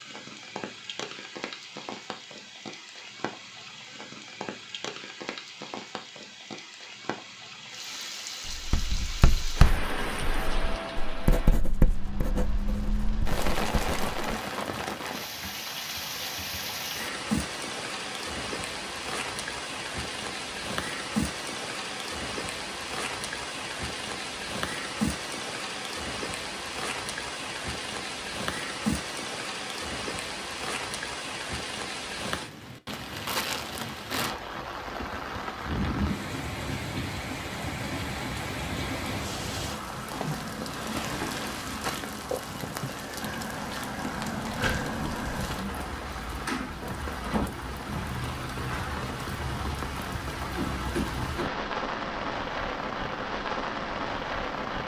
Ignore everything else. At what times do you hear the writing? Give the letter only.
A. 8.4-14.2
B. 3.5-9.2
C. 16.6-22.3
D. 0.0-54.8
A.